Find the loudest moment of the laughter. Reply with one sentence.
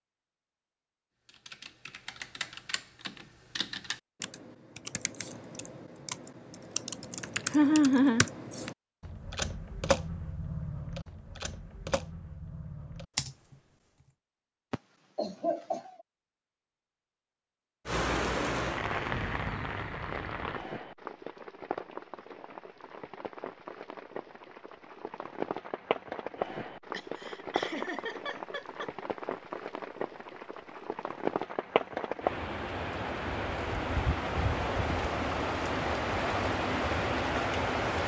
The volume of the laughter peaks at 8 seconds.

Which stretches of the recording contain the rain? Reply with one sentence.
The rain can be heard from 17.9 to 38.0 s.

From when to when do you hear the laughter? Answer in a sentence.
The laughter can be heard from 7.5 to 8.7 s, from 14.7 to 15.9 s and from 26.9 to 28.9 s.